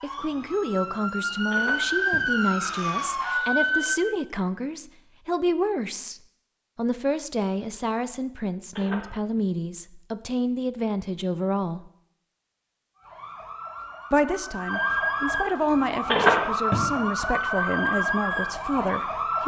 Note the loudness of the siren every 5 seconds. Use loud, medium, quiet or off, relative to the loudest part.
loud, off, medium, loud.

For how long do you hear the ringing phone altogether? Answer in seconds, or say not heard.
2 s.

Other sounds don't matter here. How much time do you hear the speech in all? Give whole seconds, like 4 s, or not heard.
17 s.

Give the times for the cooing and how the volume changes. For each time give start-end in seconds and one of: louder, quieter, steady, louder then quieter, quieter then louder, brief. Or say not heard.
not heard.